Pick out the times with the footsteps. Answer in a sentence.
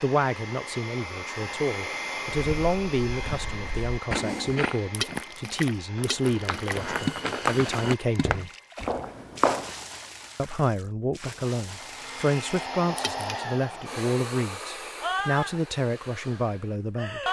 You can hear the footsteps from 2.4 to 9.8 s.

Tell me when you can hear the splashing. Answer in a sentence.
The splashing can be heard from 4.9 to 13.3 s.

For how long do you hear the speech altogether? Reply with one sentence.
You can hear the speech for 15 seconds altogether.